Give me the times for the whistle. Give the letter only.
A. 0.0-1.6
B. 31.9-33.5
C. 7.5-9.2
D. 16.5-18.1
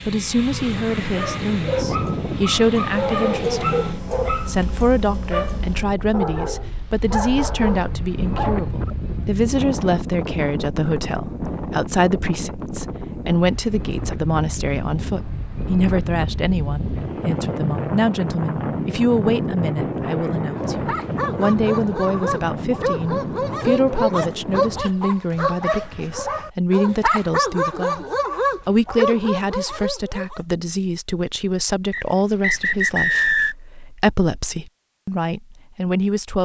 B.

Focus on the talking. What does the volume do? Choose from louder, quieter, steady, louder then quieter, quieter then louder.
steady.